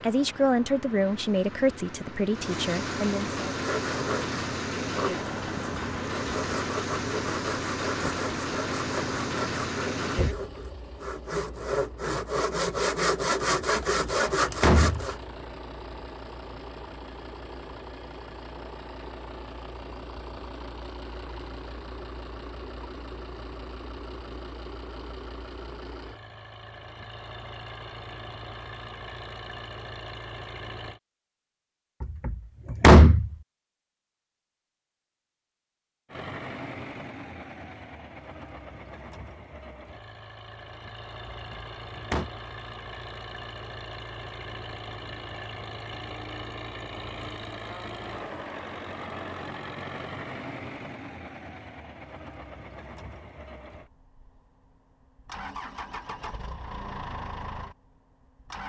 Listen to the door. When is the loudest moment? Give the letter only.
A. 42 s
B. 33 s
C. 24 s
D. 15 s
B.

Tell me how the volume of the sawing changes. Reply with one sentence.
The volume of the sawing goes up.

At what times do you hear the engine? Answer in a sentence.
You can hear the engine from 0.0 to 31.0 s and from 36.0 to 58.6 s.